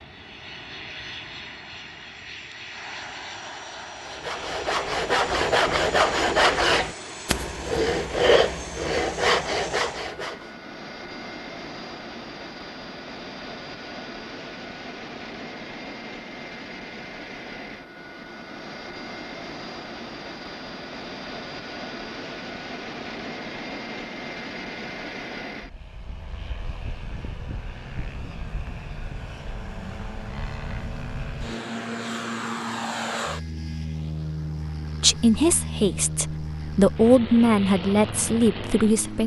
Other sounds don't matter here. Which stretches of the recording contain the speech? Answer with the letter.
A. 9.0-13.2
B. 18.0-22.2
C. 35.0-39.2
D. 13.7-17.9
C.